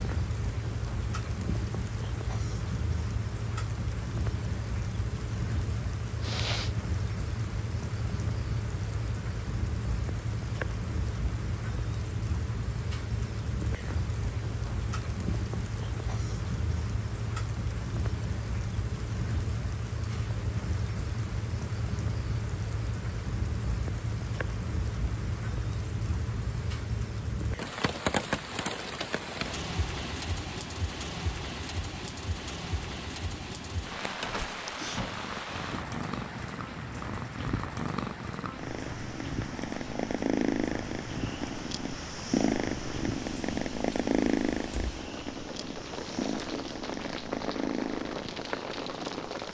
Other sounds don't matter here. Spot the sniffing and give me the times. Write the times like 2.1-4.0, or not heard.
6.2-6.8.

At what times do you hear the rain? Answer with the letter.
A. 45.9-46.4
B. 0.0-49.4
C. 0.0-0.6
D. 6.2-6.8
B.